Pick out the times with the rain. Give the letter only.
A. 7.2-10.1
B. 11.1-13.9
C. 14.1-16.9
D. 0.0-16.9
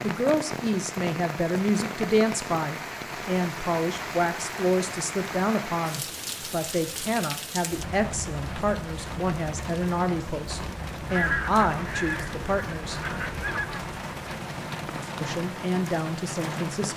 D.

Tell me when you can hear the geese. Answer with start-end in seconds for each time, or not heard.
11.1-13.9.